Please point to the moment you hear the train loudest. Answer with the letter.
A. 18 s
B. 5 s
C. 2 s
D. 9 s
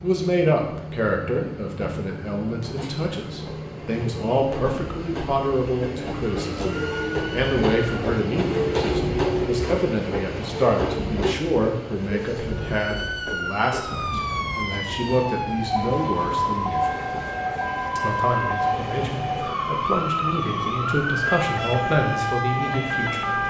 D.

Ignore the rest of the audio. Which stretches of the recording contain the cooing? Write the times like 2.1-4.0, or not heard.
not heard.